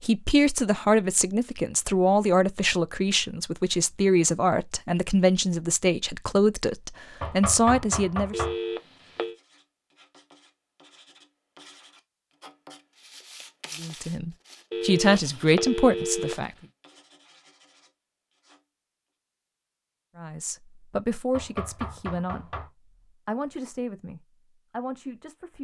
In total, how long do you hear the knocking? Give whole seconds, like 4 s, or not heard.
3 s.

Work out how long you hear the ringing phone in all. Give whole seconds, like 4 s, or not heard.
3 s.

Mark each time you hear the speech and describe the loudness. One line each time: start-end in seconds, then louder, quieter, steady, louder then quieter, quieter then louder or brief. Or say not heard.
0.0-8.4 steady
13.8-16.5 brief
20.1-22.5 brief
23.2-25.5 brief.